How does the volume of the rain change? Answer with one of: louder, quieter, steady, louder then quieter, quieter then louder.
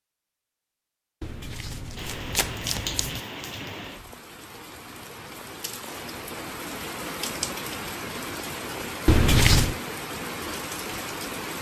quieter then louder.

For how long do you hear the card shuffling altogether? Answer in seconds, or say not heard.
3 s.